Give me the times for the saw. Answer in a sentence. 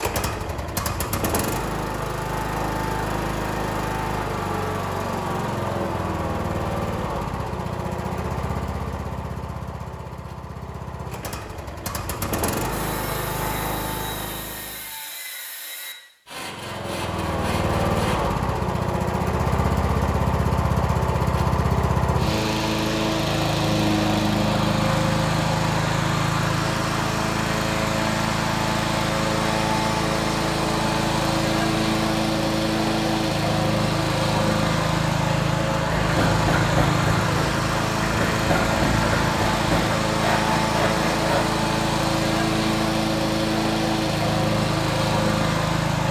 You can hear the saw from 12.7 to 18.3 s and from 35.9 to 41.5 s.